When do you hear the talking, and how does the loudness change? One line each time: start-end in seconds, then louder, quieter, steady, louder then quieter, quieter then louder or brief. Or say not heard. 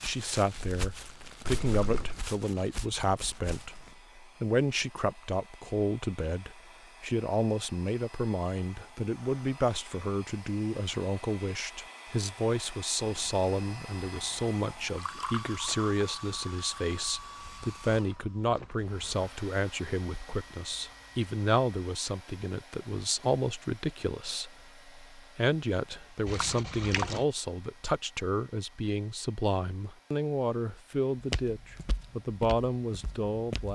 0.0-33.6 steady.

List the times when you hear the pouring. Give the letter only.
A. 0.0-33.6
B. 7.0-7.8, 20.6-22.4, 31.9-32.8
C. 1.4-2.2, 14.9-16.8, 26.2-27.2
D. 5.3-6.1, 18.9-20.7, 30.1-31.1
C.